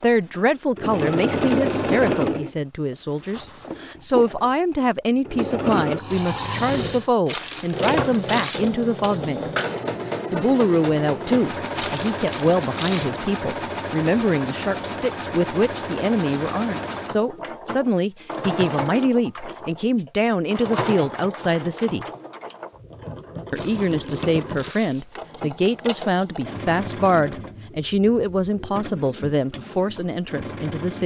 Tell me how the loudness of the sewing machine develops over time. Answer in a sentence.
The volume of the sewing machine goes down.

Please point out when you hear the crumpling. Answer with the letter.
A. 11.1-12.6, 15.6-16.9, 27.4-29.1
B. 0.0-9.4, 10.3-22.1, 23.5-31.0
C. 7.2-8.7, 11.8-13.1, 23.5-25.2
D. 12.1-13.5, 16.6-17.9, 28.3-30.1
C.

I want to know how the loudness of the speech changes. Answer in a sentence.
The loudness of the speech stays about the same.